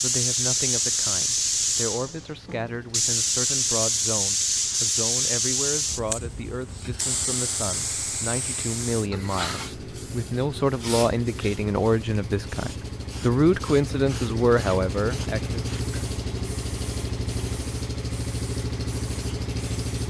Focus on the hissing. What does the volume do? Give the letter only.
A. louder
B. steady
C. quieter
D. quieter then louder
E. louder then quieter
C.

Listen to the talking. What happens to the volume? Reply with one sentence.
The loudness of the talking goes up.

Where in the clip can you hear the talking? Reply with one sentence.
The talking can be heard from 0.0 to 15.6 s.